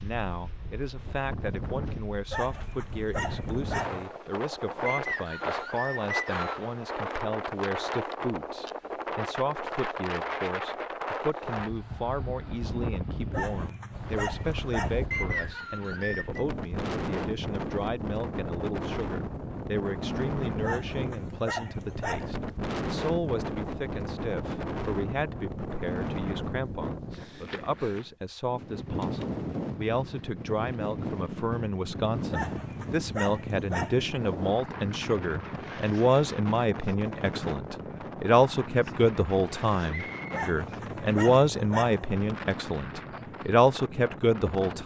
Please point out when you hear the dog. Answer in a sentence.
The dog can be heard from 2.3 to 4.0 s, from 13.3 to 15.1 s, from 20.6 to 22.4 s, from 32.3 to 34.0 s and from 40.3 to 42.1 s.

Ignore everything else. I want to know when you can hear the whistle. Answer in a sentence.
The whistle can be heard from 4.8 to 6.7 s, from 15.1 to 16.4 s and from 39.9 to 40.5 s.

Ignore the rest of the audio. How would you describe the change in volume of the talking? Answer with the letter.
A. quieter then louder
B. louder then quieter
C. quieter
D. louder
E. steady
D.